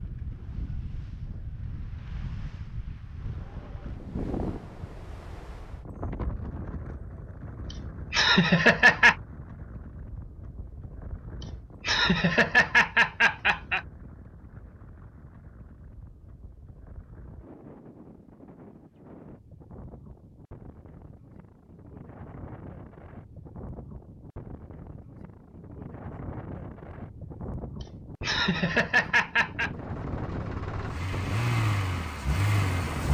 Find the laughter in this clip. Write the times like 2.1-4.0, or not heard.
8.1-9.2, 11.8-13.8, 28.2-29.7.